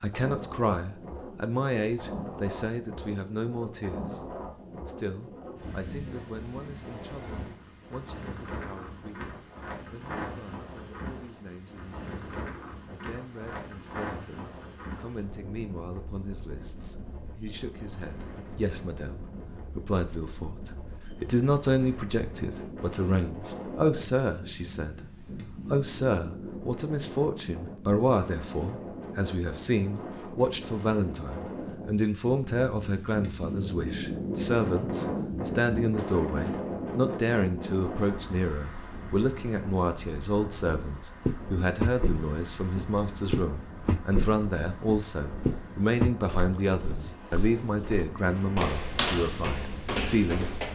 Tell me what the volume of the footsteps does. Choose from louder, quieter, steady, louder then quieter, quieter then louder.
quieter then louder.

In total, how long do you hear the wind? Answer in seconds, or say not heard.
51 s.